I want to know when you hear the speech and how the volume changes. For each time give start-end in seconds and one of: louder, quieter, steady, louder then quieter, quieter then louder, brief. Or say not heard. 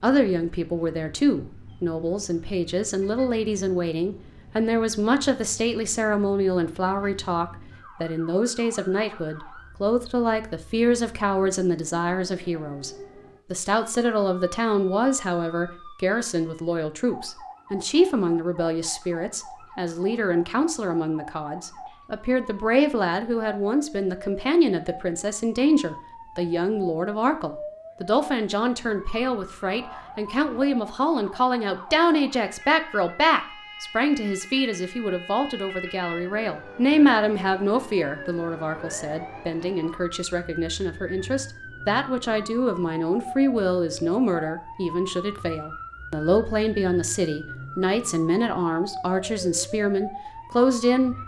0.0-12.9 steady
13.5-51.1 steady.